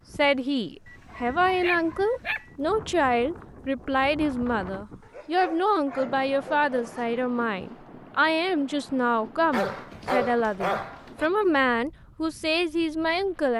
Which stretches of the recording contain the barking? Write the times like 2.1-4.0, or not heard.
0.8-2.5, 5.0-7.2, 9.5-11.3.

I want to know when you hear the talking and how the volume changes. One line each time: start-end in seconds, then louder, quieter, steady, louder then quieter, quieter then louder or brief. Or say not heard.
0.1-13.5 steady.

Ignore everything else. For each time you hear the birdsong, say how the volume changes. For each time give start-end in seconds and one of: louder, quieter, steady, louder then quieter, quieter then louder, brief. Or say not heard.
not heard.